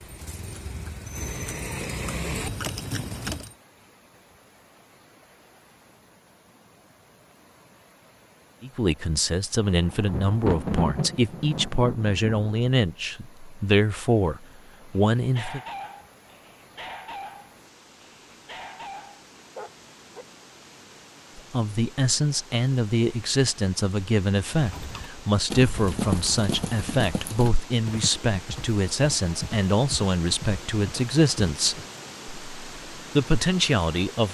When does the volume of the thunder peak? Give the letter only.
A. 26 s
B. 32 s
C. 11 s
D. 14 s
C.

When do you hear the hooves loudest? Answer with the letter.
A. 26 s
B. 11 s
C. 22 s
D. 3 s
A.